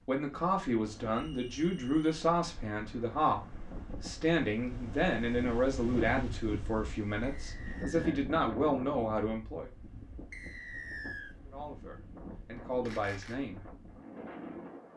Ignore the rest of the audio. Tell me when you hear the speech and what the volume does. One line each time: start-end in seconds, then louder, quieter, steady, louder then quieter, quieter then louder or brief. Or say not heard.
0.1-9.7 steady
11.4-13.6 brief.